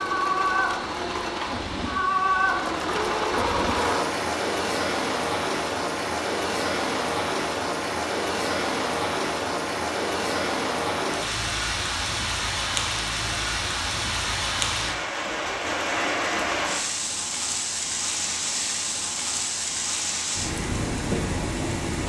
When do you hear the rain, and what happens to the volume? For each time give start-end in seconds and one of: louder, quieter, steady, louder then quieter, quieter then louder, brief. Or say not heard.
0.0-22.0 steady.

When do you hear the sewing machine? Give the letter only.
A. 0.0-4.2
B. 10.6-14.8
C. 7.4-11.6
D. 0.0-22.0
A.